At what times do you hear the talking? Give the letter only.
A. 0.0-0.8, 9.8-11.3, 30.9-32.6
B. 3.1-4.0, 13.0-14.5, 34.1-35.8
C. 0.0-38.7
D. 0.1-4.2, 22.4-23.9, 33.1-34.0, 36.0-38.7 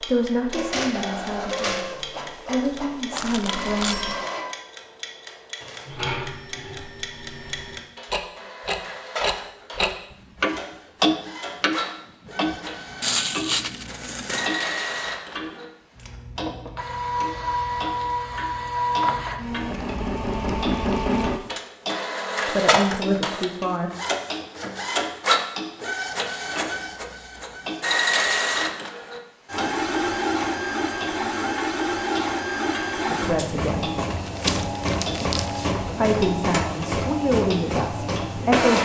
D.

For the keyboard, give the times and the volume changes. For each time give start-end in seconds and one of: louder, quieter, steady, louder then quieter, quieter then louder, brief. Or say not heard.
not heard.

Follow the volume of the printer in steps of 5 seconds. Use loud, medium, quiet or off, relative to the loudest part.
medium, medium, medium, loud, loud, loud, loud, loud.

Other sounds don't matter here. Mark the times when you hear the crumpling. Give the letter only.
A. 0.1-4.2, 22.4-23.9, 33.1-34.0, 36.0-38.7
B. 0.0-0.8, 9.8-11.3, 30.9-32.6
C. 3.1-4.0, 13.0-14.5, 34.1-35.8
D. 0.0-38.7
C.